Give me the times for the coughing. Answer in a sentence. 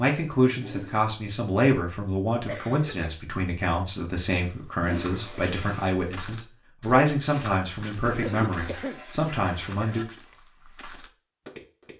You can hear the coughing from 2.5 to 3.1 s and from 8.2 to 9.0 s.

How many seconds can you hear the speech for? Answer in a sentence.
The speech can be heard for 10 seconds in total.